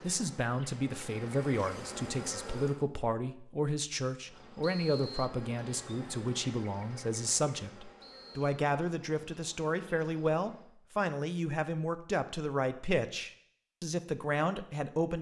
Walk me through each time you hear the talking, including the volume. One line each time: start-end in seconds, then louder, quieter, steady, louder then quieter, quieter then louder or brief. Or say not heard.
0.0-15.1 steady.